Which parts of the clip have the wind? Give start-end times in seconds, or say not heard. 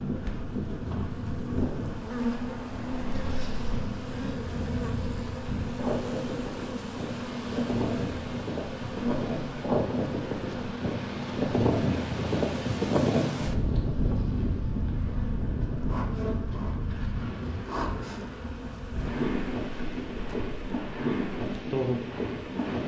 0.0-22.8.